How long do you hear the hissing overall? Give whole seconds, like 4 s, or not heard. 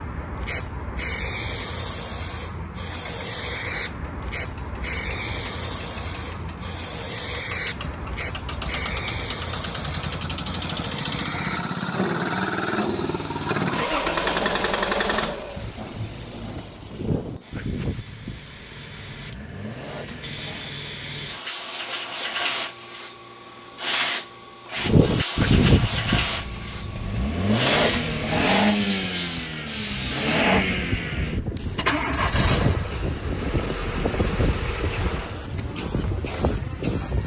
37 s.